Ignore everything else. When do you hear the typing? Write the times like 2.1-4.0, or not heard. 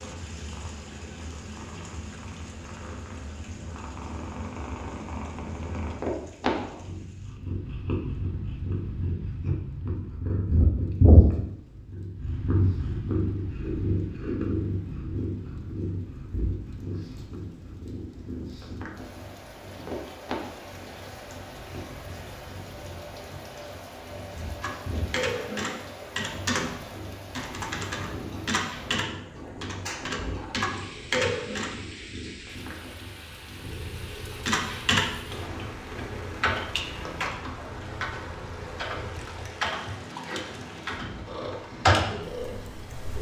24.6-31.8, 34.1-43.1.